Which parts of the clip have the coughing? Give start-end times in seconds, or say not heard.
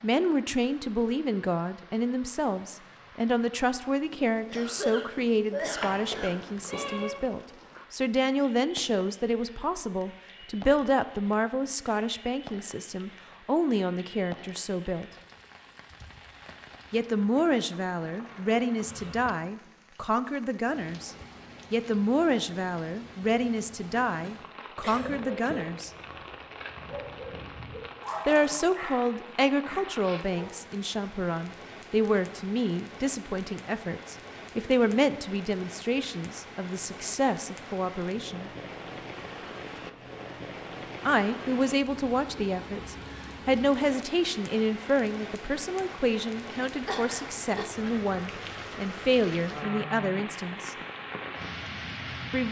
4.5-6.3, 24.1-25.7, 46.8-47.6.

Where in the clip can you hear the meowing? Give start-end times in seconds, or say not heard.
5.8-7.2.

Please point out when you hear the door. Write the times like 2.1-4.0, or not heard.
not heard.